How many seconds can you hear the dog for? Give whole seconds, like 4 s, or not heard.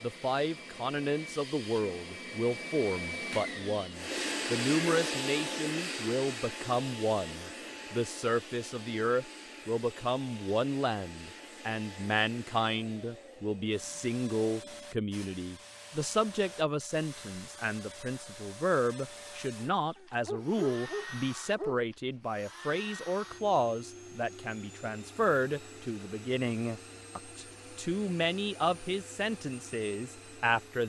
2 s.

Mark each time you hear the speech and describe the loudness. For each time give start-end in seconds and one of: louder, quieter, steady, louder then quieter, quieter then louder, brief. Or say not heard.
0.0-30.8 steady.